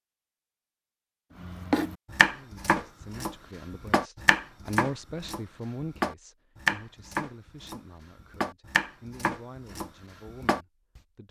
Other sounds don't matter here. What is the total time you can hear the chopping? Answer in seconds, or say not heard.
9 s.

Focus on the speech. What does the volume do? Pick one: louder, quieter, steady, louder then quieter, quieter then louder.
louder then quieter.